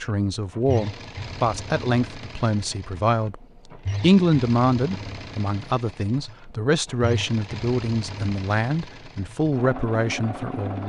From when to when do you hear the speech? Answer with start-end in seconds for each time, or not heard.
0.0-10.8.